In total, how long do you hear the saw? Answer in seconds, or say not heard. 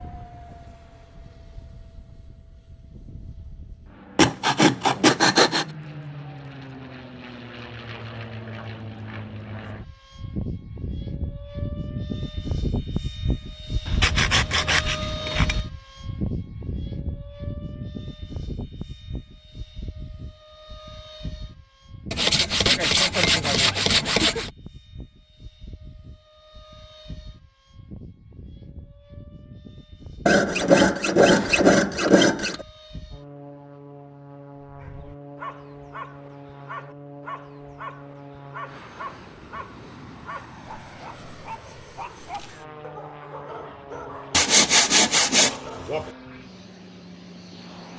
10 s.